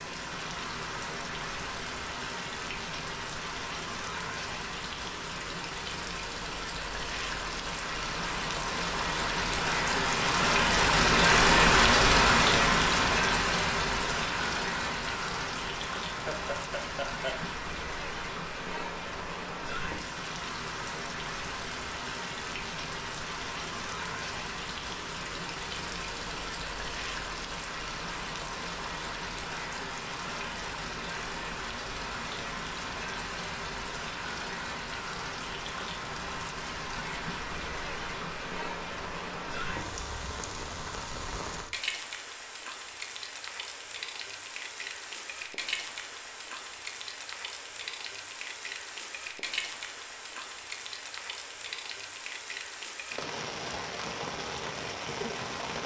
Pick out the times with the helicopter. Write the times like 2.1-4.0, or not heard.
not heard.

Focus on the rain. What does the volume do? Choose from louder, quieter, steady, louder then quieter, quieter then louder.
quieter.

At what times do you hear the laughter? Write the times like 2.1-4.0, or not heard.
16.1-17.4.